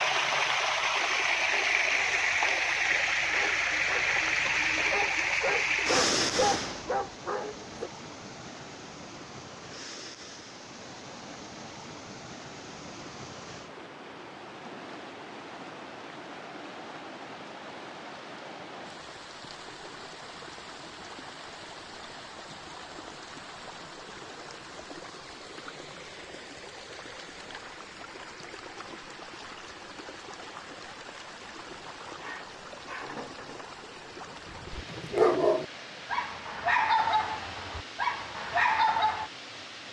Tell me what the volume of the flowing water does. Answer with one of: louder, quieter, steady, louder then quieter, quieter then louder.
quieter.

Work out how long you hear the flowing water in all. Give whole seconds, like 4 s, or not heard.
40 s.